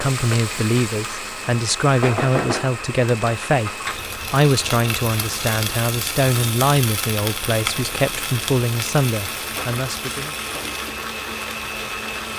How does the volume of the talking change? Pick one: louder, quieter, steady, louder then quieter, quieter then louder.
steady.